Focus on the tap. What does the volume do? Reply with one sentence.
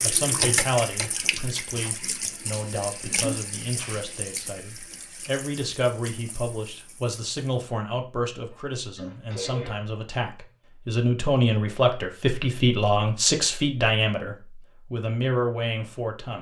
The volume of the tap goes down.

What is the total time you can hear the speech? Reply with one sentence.
You can hear the speech for 16 seconds altogether.